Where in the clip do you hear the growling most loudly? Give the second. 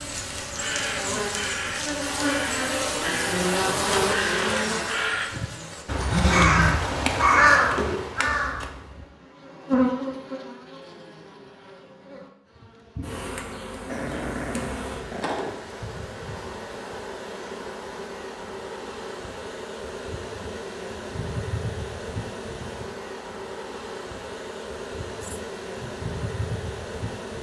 6 s.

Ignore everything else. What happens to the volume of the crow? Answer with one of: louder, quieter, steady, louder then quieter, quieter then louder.
louder.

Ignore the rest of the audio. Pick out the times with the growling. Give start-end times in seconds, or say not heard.
6.0-6.8, 13.8-15.3, 25.2-25.9.